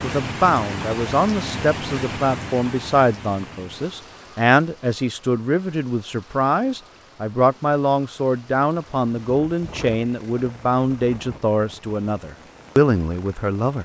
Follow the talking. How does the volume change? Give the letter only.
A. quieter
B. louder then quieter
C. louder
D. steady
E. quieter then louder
D.